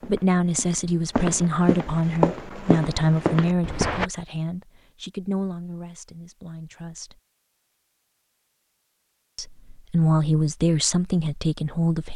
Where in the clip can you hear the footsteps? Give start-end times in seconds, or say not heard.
0.0-4.1.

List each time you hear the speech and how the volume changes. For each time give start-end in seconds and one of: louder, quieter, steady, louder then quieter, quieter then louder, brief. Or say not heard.
0.1-7.2 quieter
9.3-12.1 brief.